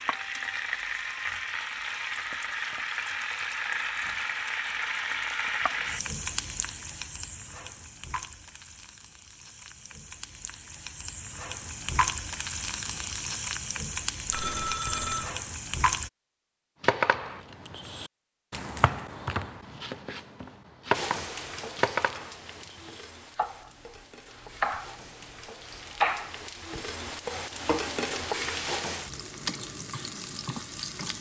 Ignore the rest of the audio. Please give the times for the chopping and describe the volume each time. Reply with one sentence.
The chopping can be heard from 16.8 to 25.1 s, getting louder; and briefly from 25.7 to 27.9 s.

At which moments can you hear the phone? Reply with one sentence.
The phone can be heard from 14.3 to 15.3 s.